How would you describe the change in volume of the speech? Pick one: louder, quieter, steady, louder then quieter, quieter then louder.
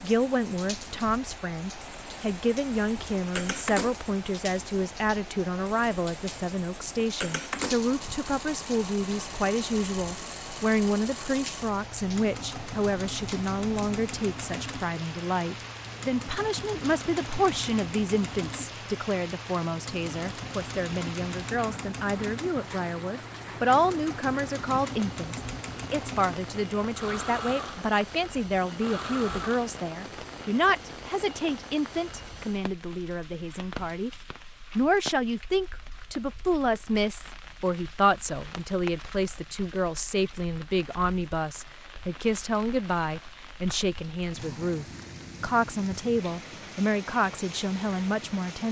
steady.